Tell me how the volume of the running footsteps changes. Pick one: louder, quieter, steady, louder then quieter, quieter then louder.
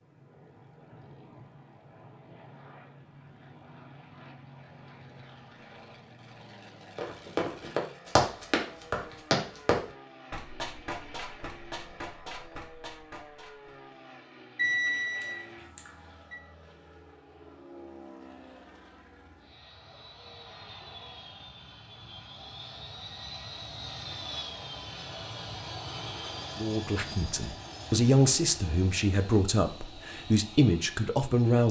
quieter.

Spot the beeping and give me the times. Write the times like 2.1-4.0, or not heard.
14.6-16.4.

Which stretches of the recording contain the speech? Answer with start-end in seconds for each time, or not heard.
26.6-31.6.